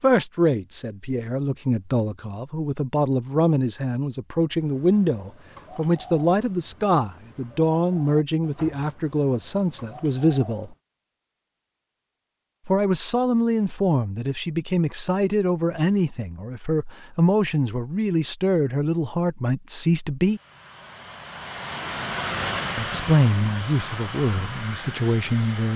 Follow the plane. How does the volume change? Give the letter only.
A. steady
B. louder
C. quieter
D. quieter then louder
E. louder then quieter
E.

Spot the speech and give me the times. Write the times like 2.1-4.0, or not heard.
0.0-10.8, 12.7-20.4, 22.8-25.7.